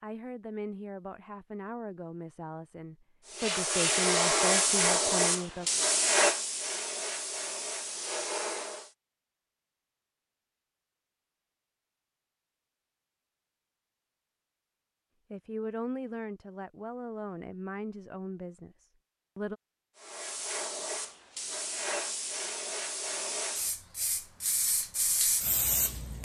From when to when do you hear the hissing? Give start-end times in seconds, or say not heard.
3.3-8.9, 19.9-26.2.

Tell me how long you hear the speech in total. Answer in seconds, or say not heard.
10 s.